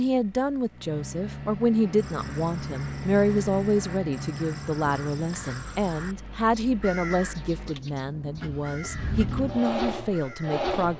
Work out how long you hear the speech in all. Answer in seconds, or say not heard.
11 s.